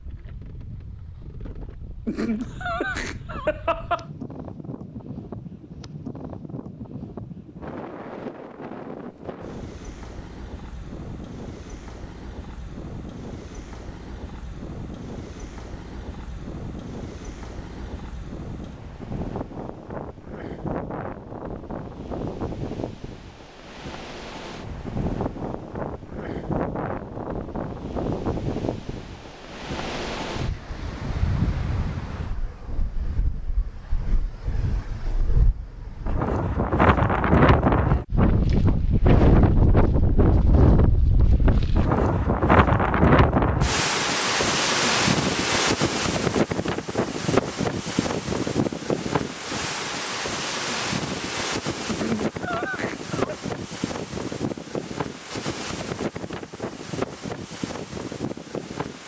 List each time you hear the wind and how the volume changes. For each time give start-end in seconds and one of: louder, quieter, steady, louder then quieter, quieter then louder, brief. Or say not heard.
0.0-59.0 louder then quieter.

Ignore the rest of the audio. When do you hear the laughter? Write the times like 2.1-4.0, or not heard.
2.0-4.0, 51.9-53.4.